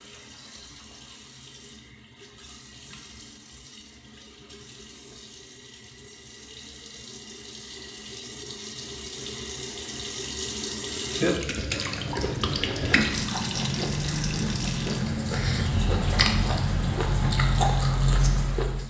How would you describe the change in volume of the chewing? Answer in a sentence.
The loudness of the chewing goes up.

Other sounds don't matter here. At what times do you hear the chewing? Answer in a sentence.
The chewing can be heard from 11.8 to 18.8 s.